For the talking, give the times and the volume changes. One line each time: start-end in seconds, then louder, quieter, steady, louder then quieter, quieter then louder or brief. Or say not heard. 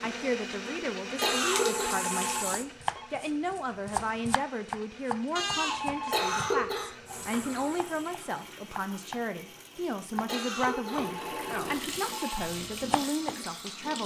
0.0-14.0 steady.